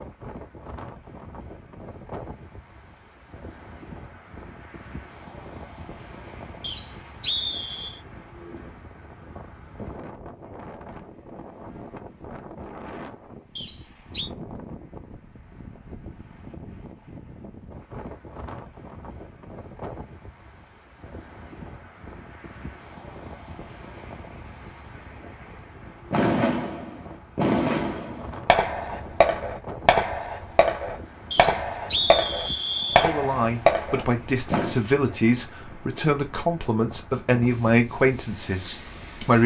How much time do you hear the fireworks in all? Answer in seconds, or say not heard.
9 s.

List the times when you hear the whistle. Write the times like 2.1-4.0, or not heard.
6.6-8.0, 13.6-14.3, 31.3-33.1.